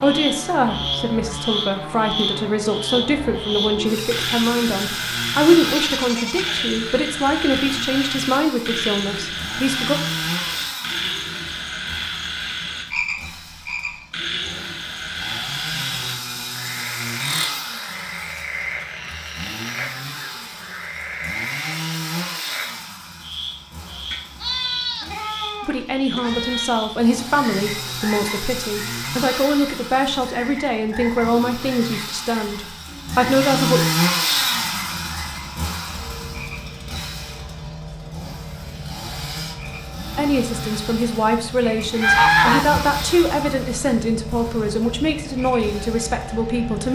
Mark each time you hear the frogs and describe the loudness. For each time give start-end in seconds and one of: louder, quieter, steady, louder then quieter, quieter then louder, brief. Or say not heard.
0.0-46.9 quieter.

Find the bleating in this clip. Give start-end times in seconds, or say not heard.
5.7-6.7, 24.1-26.8.